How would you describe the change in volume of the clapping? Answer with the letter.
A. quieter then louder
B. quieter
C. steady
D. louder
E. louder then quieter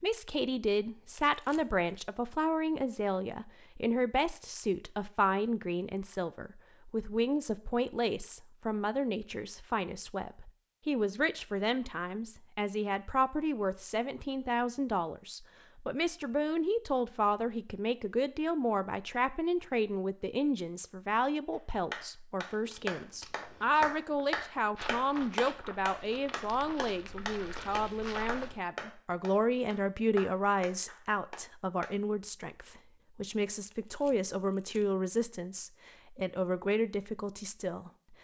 B.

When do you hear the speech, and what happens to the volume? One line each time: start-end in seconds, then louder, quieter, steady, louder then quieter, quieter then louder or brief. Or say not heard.
0.0-37.9 steady.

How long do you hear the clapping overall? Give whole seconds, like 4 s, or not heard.
10 s.